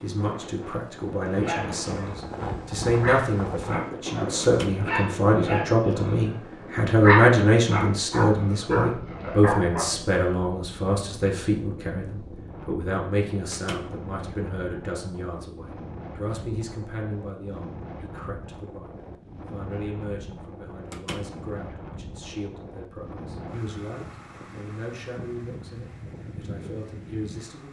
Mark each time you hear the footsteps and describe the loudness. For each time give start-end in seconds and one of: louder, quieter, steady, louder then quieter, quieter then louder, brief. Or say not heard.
not heard.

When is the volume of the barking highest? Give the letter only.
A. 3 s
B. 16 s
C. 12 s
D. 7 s
D.